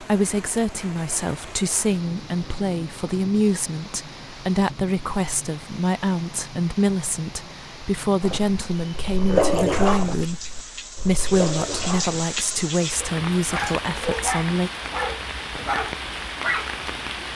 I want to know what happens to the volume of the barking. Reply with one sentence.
The volume of the barking goes down, then up.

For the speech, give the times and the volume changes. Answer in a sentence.
You can hear the speech from 0.0 to 14.7 s, at a steady volume.